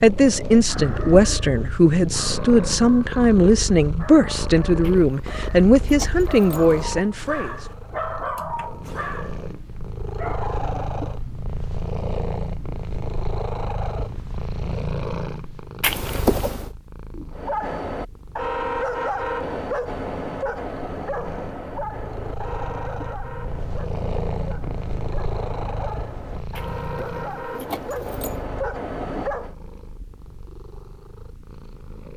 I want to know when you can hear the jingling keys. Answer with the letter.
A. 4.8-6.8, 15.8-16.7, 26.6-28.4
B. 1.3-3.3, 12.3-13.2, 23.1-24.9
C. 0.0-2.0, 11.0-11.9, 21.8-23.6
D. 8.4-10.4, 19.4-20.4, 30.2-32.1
A.